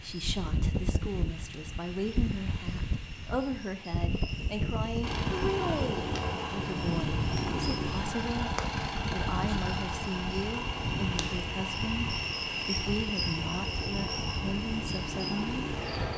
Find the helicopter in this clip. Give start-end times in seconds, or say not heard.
5.0-16.1.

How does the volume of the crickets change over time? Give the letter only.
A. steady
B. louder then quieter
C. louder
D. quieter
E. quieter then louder
C.